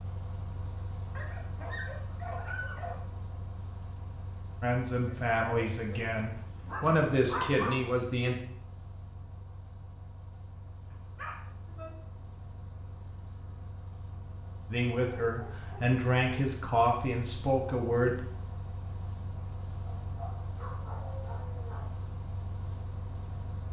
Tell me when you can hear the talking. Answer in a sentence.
The talking can be heard from 4.6 to 8.3 s and from 14.7 to 18.2 s.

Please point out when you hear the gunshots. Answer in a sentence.
You can't hear the gunshots here.